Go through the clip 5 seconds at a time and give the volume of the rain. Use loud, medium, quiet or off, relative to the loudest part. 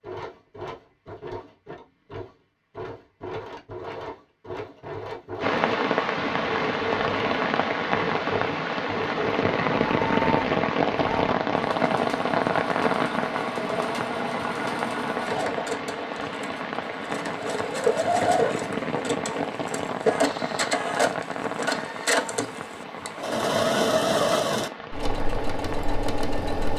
off, loud, loud, medium, medium, quiet.